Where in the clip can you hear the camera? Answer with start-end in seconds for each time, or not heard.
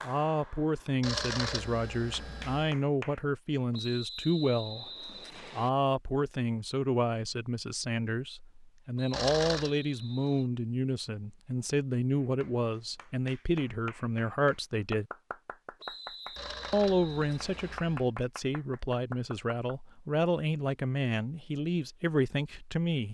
1.0-2.8, 9.1-9.7, 16.4-18.1.